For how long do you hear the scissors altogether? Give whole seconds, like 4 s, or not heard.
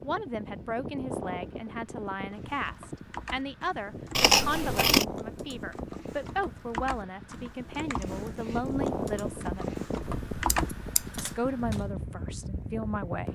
2 s.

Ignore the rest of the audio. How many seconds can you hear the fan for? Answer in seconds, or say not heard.
13 s.